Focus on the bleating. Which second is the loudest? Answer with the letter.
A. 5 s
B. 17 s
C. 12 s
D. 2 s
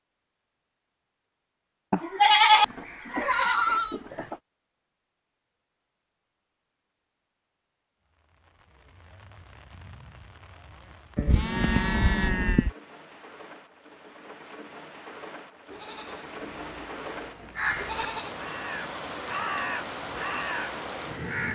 D.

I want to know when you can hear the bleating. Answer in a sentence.
The bleating can be heard from 1.9 to 4.3 s, from 11.2 to 12.7 s and from 15.7 to 18.4 s.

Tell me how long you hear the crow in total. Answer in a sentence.
The crow can be heard for 4 seconds in total.